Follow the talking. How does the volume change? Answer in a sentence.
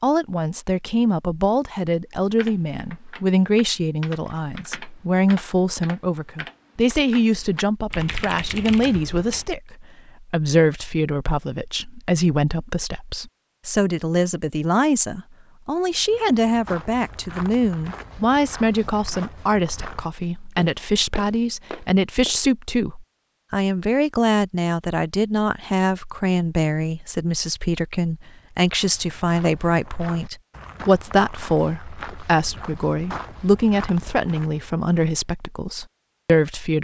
The volume of the talking stays about the same.